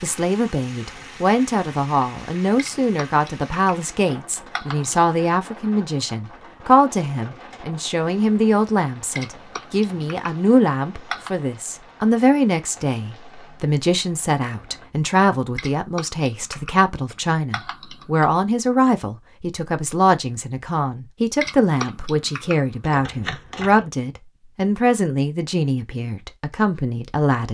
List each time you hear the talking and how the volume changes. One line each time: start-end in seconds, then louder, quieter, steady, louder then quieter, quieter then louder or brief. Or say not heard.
0.0-27.4 steady.